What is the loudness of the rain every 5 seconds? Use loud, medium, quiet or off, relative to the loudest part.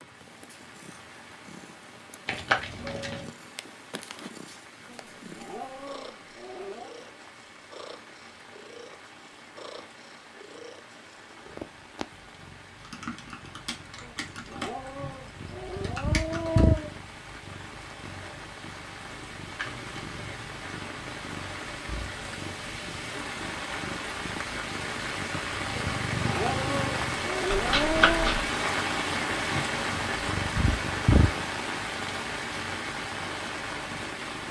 quiet, quiet, quiet, quiet, medium, loud, loud.